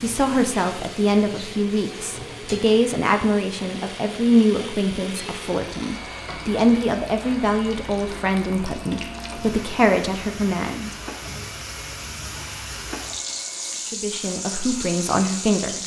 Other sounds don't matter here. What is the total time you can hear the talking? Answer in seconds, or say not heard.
13 s.